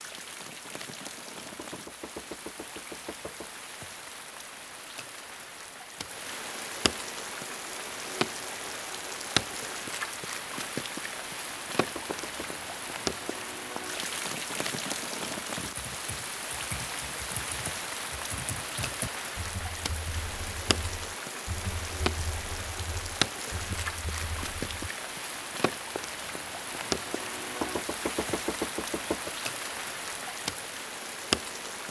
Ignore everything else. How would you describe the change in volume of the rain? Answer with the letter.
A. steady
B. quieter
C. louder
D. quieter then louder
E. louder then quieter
C.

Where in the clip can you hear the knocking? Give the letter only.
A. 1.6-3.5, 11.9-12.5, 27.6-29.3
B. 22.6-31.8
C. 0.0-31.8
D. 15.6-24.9
A.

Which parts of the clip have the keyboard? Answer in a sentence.
The keyboard can be heard from 15.6 to 24.9 s.